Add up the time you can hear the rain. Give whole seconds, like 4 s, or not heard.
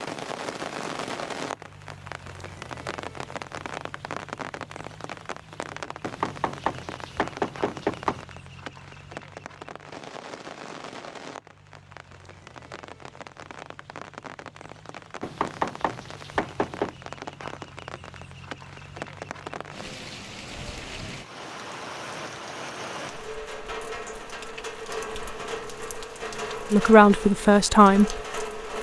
29 s.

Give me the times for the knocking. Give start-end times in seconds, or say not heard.
6.0-8.2, 15.2-16.9.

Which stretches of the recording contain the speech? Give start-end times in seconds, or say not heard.
26.7-28.2.